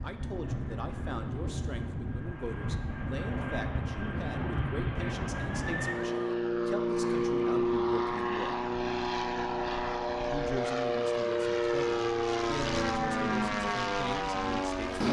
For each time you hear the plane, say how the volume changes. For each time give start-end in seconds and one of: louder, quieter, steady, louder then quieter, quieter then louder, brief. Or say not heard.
0.0-15.0 louder.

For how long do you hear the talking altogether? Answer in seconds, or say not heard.
13 s.